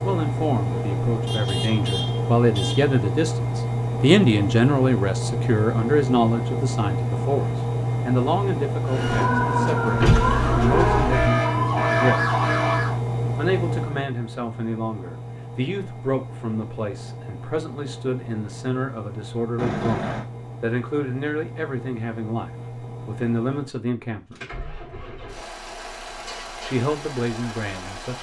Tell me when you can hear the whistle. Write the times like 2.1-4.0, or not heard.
not heard.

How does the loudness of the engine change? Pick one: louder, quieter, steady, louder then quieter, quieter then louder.
quieter.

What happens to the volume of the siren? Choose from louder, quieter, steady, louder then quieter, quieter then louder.
steady.